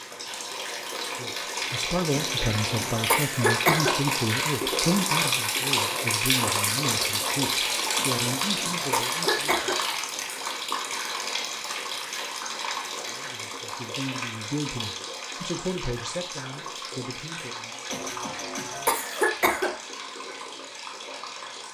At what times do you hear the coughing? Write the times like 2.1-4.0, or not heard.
2.1-4.0, 8.0-9.8, 17.9-19.7.